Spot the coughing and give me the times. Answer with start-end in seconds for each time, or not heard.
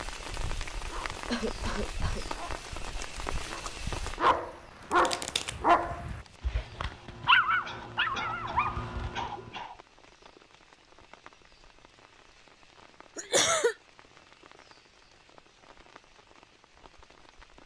1.2-2.2, 7.7-9.8, 13.2-13.8.